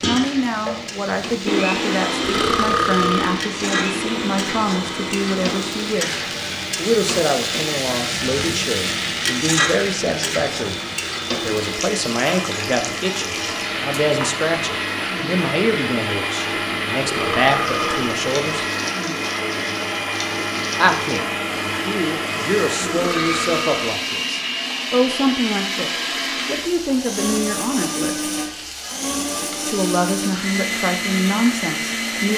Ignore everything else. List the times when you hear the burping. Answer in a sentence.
You can hear the burping from 2.2 to 3.4 s, from 17.0 to 18.1 s and from 22.8 to 23.9 s.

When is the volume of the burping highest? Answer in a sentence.
The loudest moment of the burping is at 3 seconds.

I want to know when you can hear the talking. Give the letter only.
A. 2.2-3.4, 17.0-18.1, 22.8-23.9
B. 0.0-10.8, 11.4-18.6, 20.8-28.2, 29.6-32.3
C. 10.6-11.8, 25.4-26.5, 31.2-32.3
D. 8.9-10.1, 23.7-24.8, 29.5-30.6
B.